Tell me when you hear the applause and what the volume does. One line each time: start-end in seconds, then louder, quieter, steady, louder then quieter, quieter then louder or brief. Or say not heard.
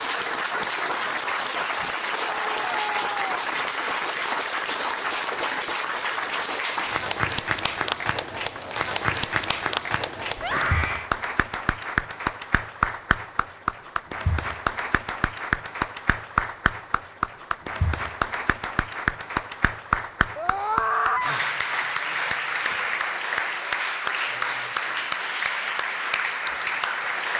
0.0-27.3 steady.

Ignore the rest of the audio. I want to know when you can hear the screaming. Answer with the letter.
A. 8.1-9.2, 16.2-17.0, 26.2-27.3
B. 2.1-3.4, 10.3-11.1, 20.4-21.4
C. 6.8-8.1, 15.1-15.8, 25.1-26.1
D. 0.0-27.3
B.